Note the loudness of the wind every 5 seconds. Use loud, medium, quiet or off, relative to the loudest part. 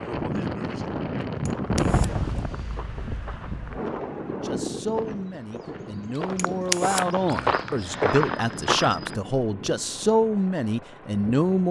loud, medium, quiet.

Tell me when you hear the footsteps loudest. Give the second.
8 s.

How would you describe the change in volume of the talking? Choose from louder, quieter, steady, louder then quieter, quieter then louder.
louder.